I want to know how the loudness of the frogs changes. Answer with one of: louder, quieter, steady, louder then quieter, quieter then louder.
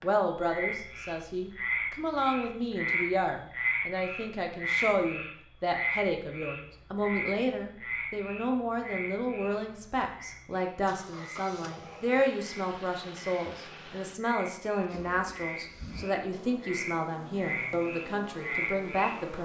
quieter then louder.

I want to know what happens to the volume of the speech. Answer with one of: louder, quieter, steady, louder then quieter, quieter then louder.
steady.